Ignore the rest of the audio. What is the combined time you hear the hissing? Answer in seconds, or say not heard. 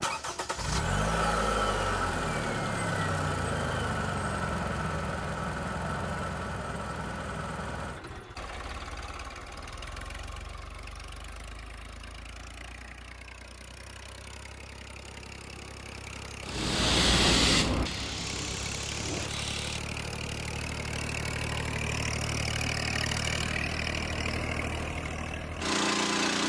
3 s.